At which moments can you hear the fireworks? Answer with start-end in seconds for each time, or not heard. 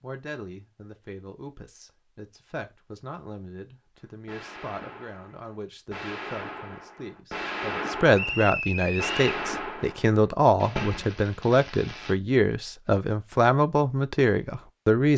4.0-12.2.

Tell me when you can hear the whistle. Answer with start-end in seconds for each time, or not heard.
8.1-9.2.